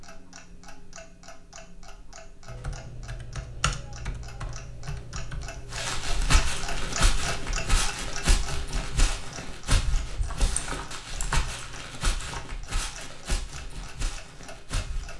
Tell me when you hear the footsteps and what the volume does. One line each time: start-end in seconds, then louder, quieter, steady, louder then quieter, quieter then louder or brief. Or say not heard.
5.7-15.1 quieter.